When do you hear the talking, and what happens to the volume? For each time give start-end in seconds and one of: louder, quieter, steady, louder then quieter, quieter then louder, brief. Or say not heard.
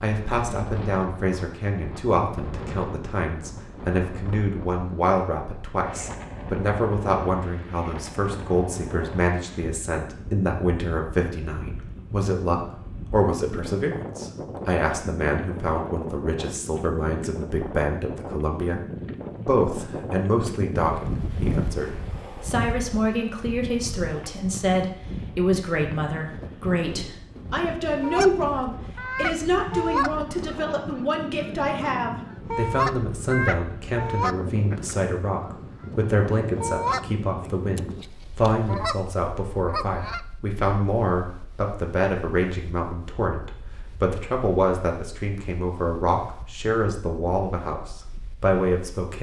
0.0-49.1 steady.